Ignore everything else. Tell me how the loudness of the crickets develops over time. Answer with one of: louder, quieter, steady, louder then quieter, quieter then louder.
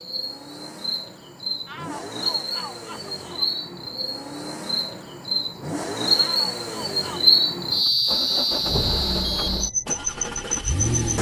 louder.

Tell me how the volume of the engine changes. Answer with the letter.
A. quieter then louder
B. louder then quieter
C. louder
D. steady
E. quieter
C.